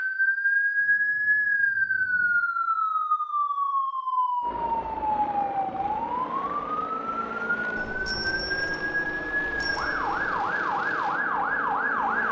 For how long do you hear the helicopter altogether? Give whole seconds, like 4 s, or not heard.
8 s.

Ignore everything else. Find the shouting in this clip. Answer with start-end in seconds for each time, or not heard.
not heard.